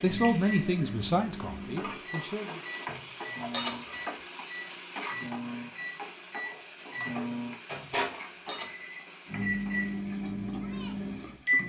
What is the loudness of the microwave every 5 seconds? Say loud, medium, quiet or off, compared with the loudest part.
medium, loud, loud.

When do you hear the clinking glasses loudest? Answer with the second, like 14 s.
4 s.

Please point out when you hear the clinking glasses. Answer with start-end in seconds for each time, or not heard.
2.9-4.0, 7.8-8.8.